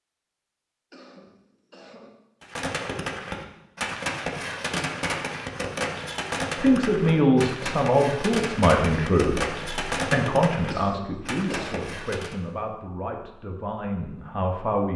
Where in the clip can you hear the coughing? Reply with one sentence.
You can hear the coughing from 0.9 to 2.1 s and from 10.7 to 11.9 s.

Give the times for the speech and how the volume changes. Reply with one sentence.
You can hear the speech from 6.5 to 14.9 s, getting quieter.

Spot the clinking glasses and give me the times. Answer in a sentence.
You can't hear the clinking glasses here.